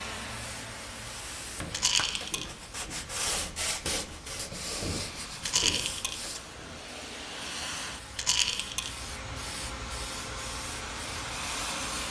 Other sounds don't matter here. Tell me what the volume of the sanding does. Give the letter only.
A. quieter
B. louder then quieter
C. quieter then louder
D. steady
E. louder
B.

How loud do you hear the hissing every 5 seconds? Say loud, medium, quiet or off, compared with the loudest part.
medium, medium, loud.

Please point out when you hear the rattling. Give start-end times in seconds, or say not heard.
1.7-2.5, 5.4-6.2, 8.2-8.9.